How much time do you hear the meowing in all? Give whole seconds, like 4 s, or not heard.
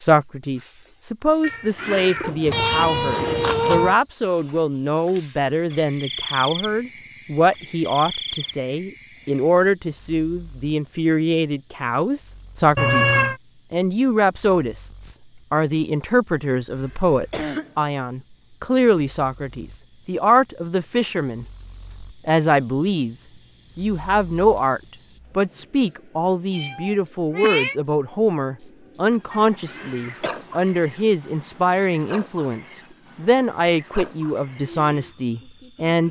4 s.